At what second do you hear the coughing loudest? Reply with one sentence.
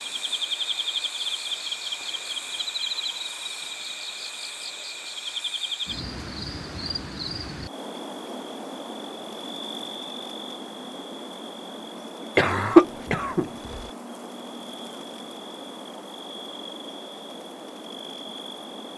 The volume of the coughing peaks at 13 seconds.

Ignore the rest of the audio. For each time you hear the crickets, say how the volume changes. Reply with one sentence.
The crickets can be heard from 0.0 to 18.9 s, getting quieter.